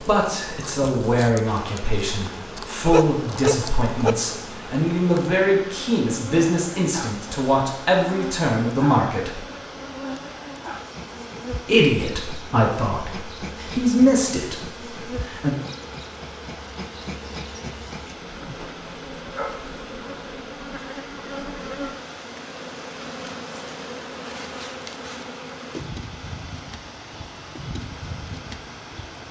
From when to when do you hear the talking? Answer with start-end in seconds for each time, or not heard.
0.0-9.4, 11.7-15.6.